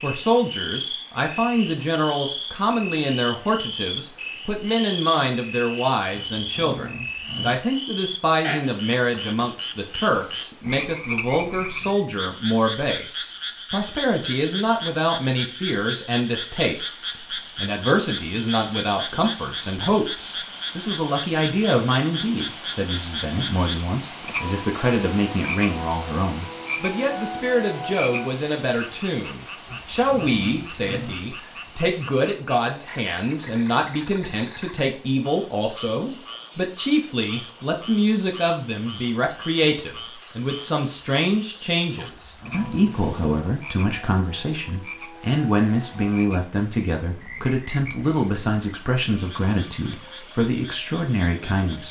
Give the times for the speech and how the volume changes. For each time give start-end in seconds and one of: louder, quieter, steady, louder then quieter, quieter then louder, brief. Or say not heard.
0.0-51.8 steady.